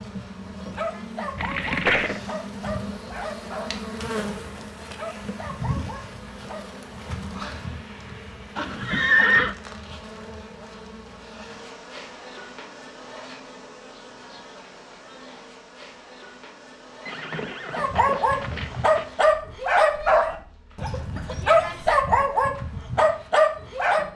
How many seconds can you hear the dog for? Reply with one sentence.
You can hear the dog for 13 seconds altogether.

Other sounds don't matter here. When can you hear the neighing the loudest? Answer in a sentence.
The loudest moment of the neighing is at 9 seconds.